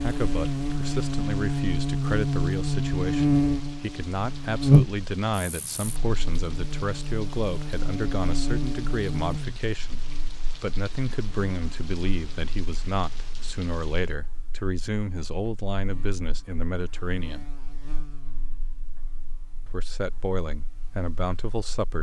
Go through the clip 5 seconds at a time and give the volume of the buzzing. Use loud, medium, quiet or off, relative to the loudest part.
loud, medium, quiet, quiet, quiet.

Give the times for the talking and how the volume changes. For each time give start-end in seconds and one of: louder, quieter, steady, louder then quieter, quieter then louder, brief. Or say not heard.
0.0-17.5 steady
19.6-21.9 brief.